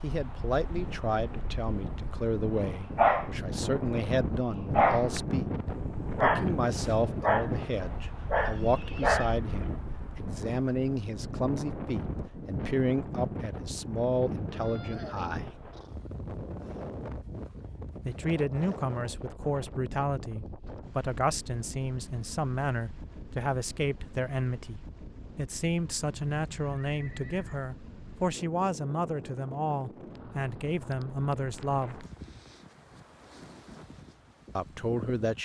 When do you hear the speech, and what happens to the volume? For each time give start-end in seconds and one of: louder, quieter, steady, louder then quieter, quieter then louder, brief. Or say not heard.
0.0-15.6 steady
18.1-32.0 steady
34.5-35.4 brief.